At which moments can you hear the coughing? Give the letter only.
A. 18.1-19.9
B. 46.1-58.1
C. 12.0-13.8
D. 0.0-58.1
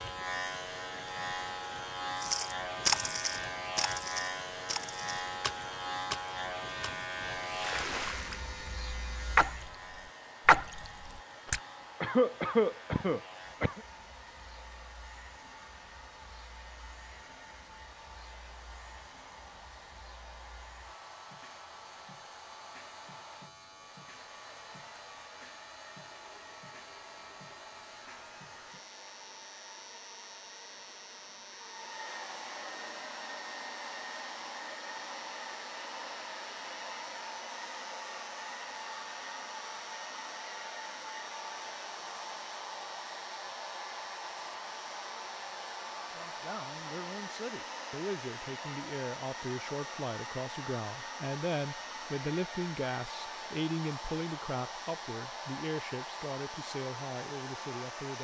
C.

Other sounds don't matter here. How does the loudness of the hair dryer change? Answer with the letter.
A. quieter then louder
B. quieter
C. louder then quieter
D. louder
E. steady
D.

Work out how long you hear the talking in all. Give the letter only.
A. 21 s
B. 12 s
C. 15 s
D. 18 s
B.